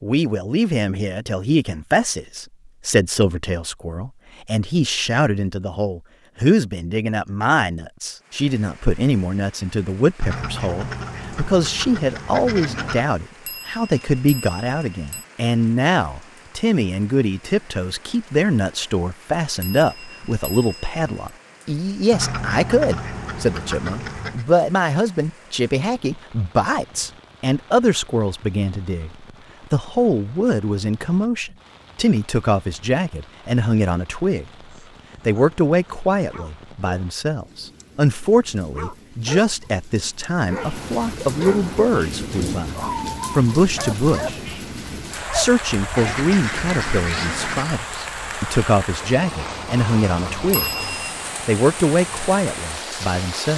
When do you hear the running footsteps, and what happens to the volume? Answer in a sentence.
You can't hear the running footsteps here.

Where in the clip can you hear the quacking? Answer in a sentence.
The quacking can be heard from 10.2 to 13.1 s, from 22.1 to 24.4 s and from 46.0 to 47.8 s.